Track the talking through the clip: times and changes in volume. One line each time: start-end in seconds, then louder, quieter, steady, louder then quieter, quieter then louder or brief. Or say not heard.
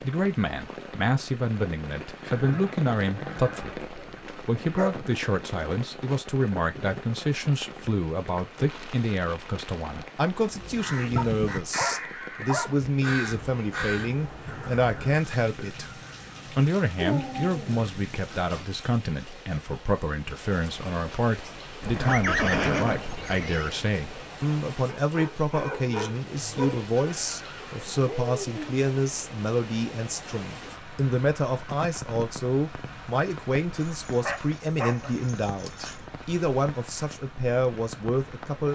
0.0-15.9 steady
16.6-38.7 steady.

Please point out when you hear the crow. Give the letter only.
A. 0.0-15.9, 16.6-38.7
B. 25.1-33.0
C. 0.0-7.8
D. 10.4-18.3
D.